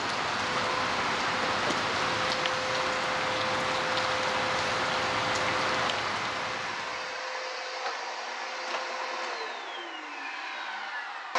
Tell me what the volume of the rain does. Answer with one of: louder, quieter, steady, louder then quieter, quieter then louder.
steady.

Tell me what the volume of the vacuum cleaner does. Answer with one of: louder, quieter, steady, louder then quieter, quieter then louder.
steady.